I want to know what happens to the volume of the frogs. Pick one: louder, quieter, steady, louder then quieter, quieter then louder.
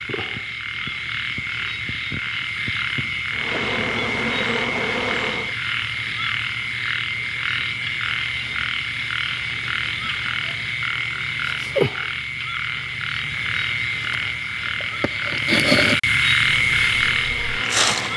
louder.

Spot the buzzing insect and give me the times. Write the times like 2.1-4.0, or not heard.
3.4-5.5, 16.4-18.1.